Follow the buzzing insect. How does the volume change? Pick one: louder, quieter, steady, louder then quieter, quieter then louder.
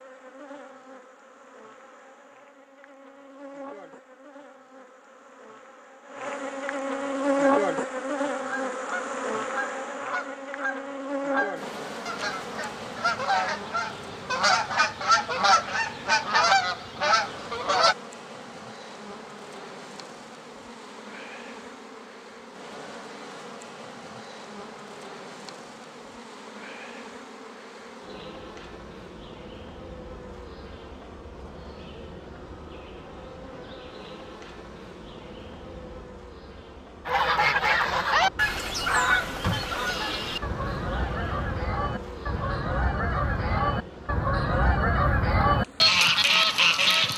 quieter.